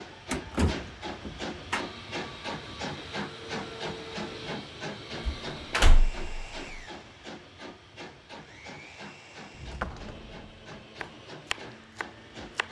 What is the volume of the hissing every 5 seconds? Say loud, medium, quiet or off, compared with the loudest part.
loud, medium, medium.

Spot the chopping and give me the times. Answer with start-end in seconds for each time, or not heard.
11.0-12.6.